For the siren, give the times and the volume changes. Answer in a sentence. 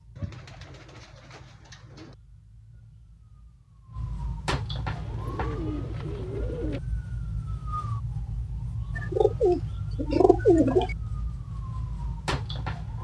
You can hear the siren from 0.0 to 13.0 s, getting louder.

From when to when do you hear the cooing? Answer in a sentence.
The cooing can be heard from 0.1 to 2.1 s, from 4.8 to 6.8 s and from 8.9 to 10.9 s.